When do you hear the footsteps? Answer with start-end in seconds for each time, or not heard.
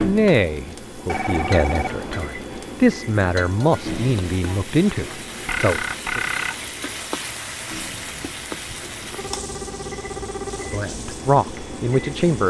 not heard.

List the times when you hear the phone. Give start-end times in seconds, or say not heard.
1.1-2.3, 5.5-6.6, 8.7-10.8.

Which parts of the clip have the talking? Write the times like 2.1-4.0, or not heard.
0.0-6.2, 10.6-12.4.